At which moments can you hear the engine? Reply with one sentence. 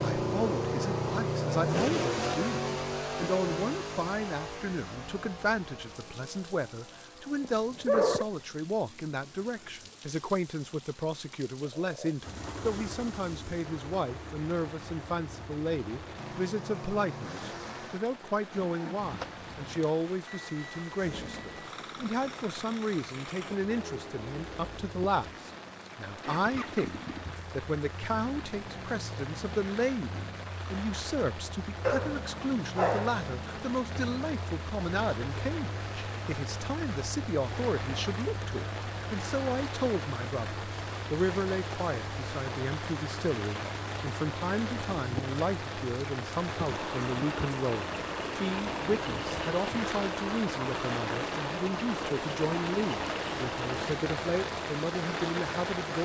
The engine can be heard from 0.0 to 8.6 s and from 12.2 to 53.8 s.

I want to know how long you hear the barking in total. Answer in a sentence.
The barking can be heard for 2 seconds in total.